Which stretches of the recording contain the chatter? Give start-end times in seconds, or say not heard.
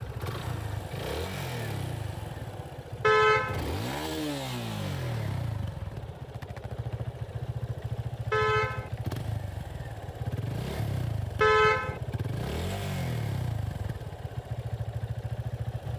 not heard.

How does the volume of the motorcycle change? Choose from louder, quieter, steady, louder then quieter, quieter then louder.
steady.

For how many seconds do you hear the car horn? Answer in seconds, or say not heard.
2 s.